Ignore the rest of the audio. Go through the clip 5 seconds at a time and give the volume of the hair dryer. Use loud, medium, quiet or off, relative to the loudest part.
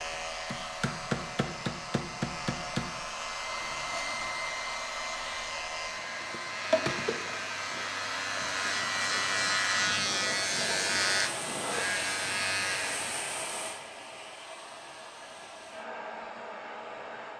loud, loud, loud, medium.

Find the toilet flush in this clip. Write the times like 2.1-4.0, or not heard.
3.6-4.3.